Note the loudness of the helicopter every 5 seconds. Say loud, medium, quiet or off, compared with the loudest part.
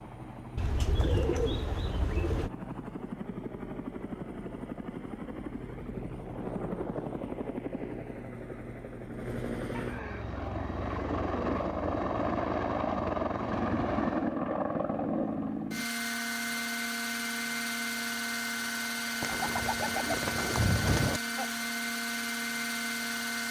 medium, medium, loud, loud, loud.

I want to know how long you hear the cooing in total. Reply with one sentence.
You can hear the cooing for 6 seconds altogether.